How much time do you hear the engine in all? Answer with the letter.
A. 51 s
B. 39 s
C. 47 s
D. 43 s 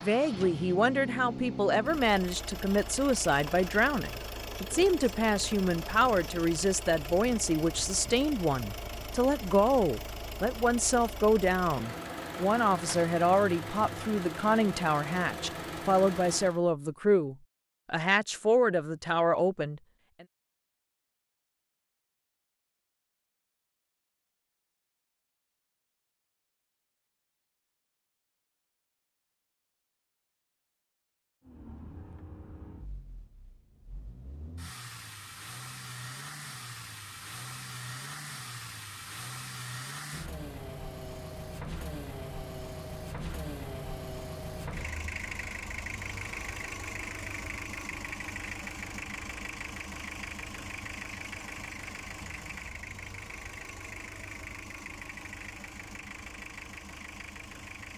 D.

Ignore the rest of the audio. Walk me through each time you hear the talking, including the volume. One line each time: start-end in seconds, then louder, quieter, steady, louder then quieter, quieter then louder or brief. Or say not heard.
0.0-20.2 steady.